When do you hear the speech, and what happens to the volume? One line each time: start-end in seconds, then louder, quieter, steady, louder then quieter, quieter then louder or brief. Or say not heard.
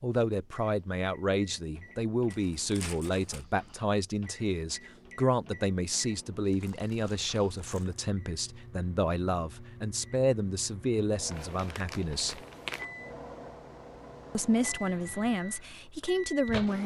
0.0-12.4 steady
14.3-16.8 brief.